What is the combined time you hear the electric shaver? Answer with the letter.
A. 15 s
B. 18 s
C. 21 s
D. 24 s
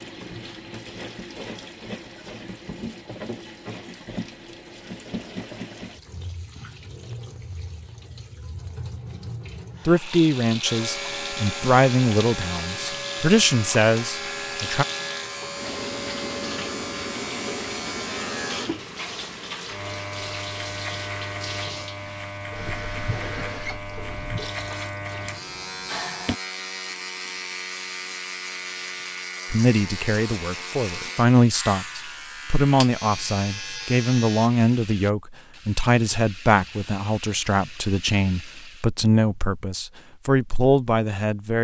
D.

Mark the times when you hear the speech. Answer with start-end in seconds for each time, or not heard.
9.8-14.8, 29.5-41.5.